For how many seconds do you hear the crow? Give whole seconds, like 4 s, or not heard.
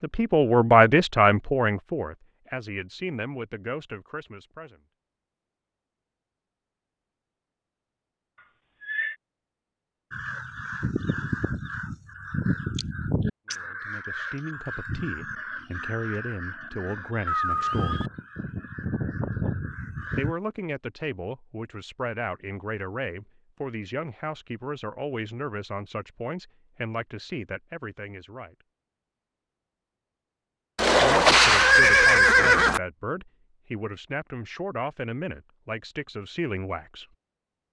10 s.